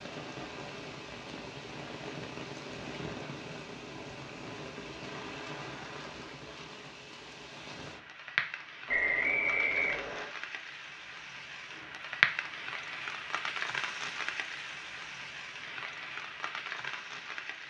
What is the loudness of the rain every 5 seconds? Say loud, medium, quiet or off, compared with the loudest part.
medium, medium, loud, medium.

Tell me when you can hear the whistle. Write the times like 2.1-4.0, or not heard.
8.8-10.3.